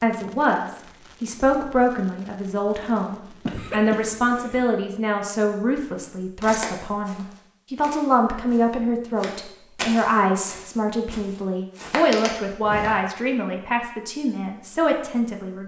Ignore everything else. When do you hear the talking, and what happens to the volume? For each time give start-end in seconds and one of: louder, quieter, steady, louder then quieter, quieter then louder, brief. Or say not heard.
0.0-15.6 steady.